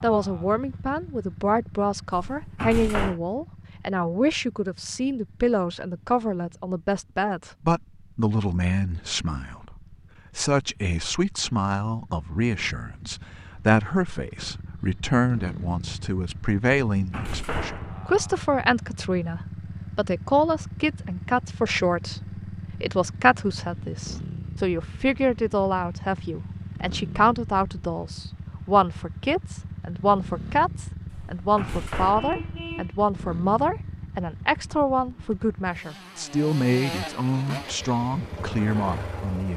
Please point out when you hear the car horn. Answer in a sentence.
The car horn can be heard from 32.1 to 33.0 s.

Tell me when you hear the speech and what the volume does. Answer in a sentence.
The speech can be heard from 0.0 to 39.5 s, at a steady volume.